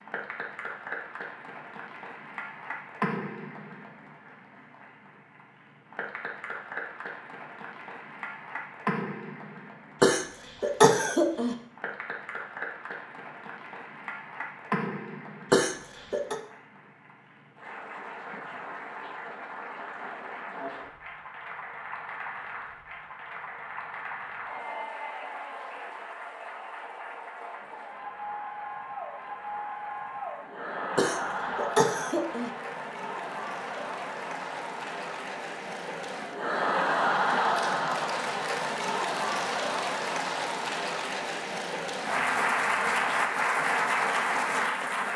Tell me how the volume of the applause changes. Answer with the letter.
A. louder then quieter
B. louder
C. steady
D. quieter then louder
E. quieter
B.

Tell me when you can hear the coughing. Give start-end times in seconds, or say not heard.
10.0-11.6, 15.5-16.4, 30.9-32.5.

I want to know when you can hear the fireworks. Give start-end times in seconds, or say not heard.
not heard.